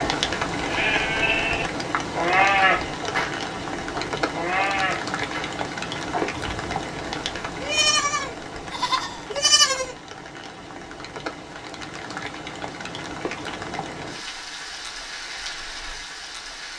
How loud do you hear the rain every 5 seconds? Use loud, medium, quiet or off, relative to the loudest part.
loud, loud, medium, medium.